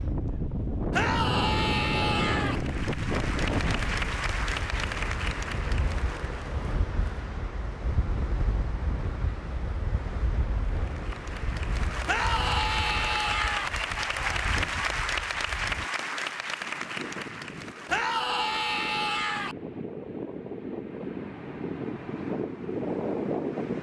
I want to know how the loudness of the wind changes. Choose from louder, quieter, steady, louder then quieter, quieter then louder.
quieter then louder.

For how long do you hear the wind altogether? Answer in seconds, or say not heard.
24 s.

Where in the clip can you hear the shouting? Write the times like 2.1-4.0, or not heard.
0.9-2.6, 12.1-13.7, 17.9-19.6.